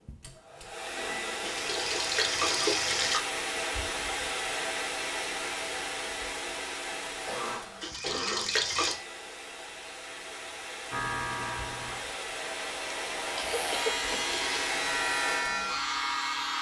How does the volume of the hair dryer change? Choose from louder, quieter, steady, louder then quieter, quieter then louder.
quieter then louder.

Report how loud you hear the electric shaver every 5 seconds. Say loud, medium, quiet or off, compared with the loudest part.
off, off, loud, loud.